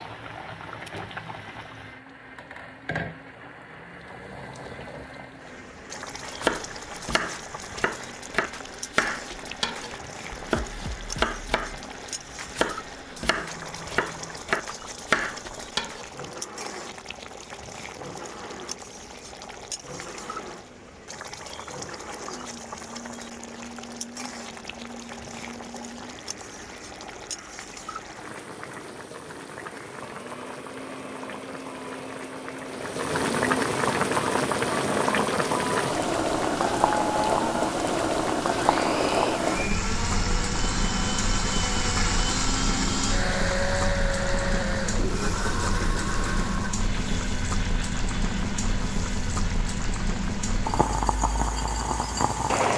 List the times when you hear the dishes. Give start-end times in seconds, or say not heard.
not heard.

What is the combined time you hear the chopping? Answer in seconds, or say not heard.
10 s.